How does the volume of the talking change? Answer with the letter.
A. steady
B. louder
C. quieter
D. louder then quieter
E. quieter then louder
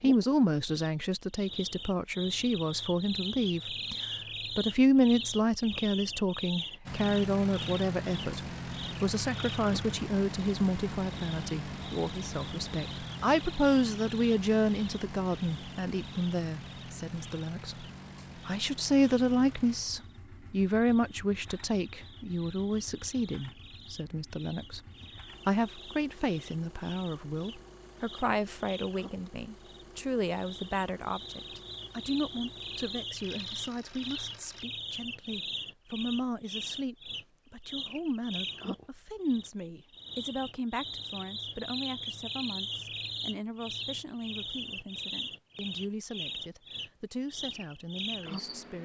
C.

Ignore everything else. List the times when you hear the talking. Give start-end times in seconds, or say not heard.
0.0-17.9, 18.4-48.8.